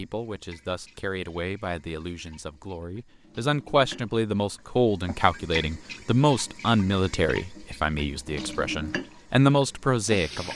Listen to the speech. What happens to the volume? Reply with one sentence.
The volume of the speech goes up.